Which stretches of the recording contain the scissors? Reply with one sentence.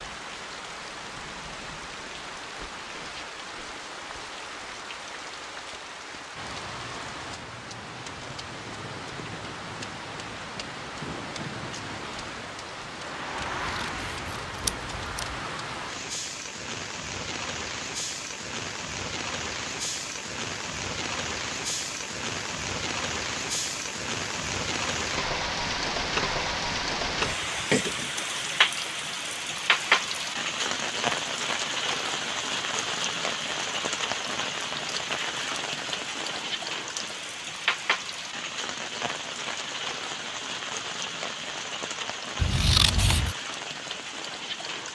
You can hear the scissors from 13.5 to 15.4 s and from 42.4 to 43.4 s.